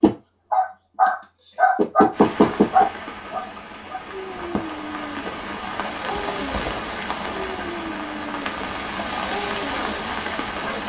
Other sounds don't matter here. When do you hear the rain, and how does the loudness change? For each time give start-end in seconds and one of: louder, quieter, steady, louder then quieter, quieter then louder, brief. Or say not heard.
2.1-10.8 louder.